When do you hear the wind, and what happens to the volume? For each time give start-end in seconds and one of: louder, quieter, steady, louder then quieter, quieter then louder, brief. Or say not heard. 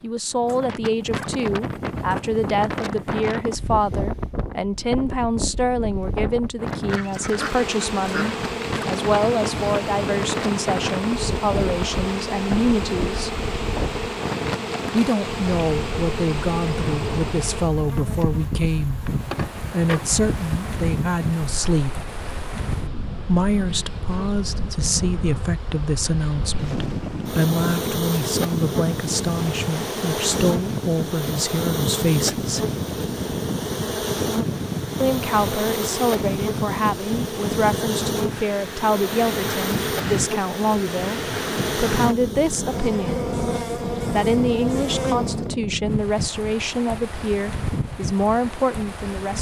0.1-49.3 steady.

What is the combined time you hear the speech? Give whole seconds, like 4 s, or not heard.
43 s.